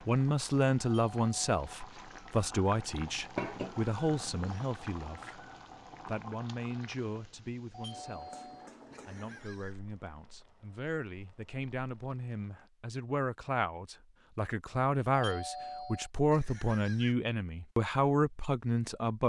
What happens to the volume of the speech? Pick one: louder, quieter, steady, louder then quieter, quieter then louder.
quieter then louder.